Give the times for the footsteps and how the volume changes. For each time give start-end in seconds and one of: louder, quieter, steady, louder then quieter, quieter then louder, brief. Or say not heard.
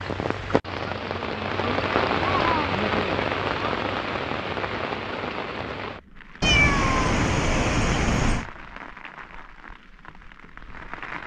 not heard.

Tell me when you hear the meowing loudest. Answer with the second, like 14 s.
7 s.